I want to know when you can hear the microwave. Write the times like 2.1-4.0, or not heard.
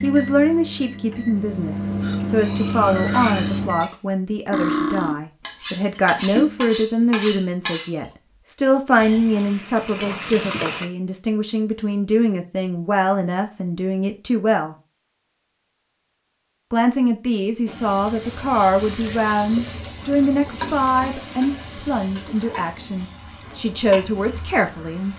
0.0-3.9.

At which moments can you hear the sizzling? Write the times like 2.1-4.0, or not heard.
8.9-10.9, 17.6-25.1.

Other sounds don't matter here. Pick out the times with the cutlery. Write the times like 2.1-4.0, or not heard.
2.0-8.1.